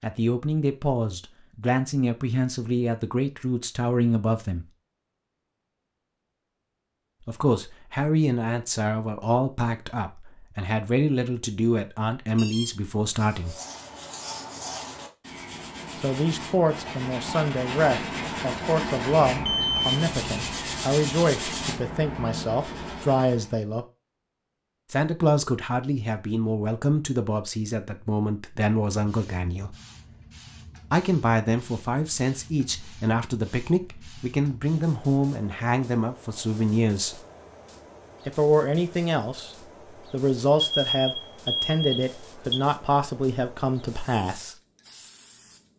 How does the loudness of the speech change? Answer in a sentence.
The loudness of the speech stays about the same.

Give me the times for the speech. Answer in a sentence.
The speech can be heard from 0.0 to 4.7 s, from 7.2 to 13.6 s, from 15.9 to 23.9 s, from 24.9 to 29.8 s, from 30.9 to 37.2 s and from 38.2 to 44.5 s.